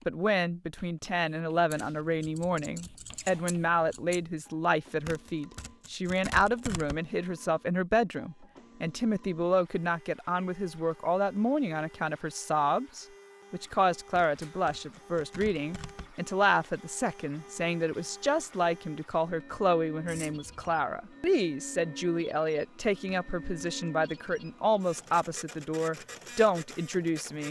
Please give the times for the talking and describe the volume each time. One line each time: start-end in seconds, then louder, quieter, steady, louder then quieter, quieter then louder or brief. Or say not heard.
0.1-27.4 steady.